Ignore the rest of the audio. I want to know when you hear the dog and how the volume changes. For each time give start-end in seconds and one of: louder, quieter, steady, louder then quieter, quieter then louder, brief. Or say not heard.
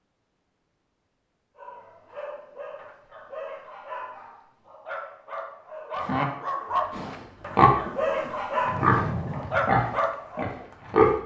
1.6-10.5 louder.